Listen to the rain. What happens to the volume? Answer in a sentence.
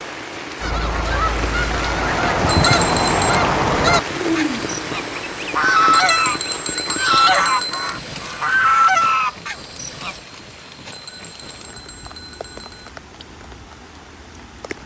The volume of the rain goes down.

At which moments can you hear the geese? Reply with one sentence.
The geese can be heard from 0.6 to 10.2 s.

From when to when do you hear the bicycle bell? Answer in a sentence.
The bicycle bell can be heard from 2.5 to 3.3 s, from 5.9 to 8.0 s and from 10.9 to 12.9 s.